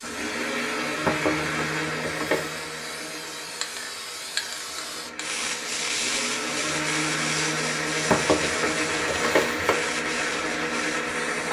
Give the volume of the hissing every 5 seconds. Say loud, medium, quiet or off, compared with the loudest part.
medium, loud, medium.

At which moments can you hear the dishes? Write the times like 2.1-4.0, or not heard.
1.1-2.5, 8.1-9.8.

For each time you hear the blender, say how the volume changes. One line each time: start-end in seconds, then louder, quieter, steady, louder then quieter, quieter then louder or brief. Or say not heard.
0.0-11.4 quieter then louder.